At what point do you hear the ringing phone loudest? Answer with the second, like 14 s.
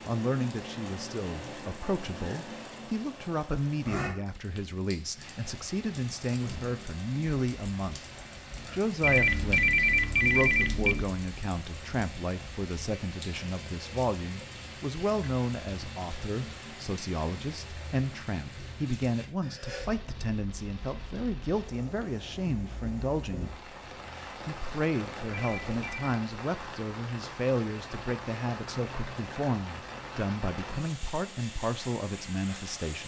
10 s.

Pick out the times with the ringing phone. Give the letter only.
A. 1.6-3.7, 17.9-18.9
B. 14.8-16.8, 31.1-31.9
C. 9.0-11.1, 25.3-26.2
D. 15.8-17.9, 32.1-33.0
C.